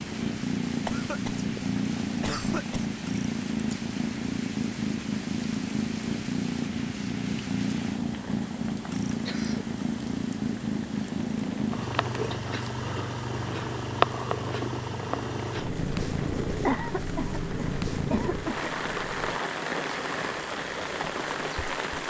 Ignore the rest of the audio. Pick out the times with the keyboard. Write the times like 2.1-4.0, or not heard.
not heard.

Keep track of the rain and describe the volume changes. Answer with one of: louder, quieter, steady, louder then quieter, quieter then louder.
louder.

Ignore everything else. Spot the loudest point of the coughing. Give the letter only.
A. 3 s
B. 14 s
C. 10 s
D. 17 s
D.